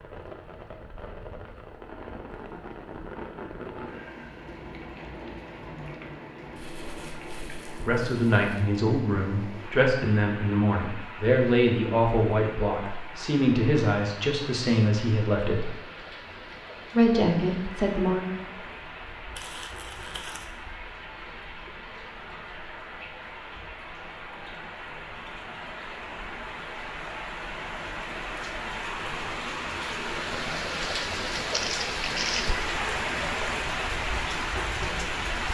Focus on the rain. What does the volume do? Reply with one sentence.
The loudness of the rain goes up.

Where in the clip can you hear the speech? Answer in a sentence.
The speech can be heard from 7.8 to 15.7 s and from 16.9 to 18.2 s.